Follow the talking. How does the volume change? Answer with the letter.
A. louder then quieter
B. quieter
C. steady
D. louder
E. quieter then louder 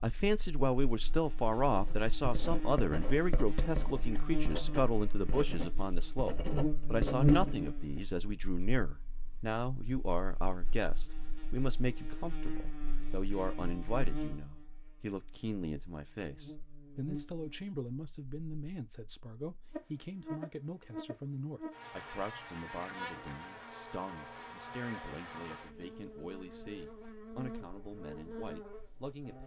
B.